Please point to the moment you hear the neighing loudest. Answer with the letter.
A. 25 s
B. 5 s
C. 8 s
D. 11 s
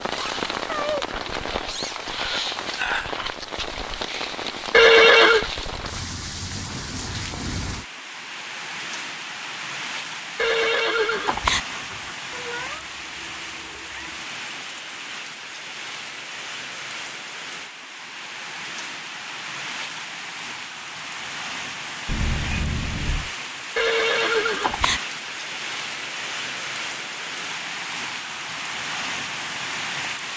B.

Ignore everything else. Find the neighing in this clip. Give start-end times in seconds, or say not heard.
4.7-5.5, 10.3-11.6, 23.8-25.0.